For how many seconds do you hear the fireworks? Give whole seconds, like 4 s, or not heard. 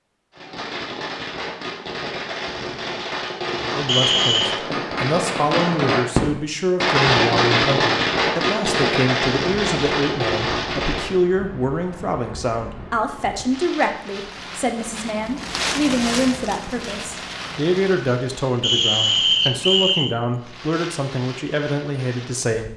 11 s.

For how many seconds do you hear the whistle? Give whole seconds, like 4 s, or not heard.
2 s.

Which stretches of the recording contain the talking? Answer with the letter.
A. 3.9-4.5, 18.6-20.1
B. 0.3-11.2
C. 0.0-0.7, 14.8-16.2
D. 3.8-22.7
D.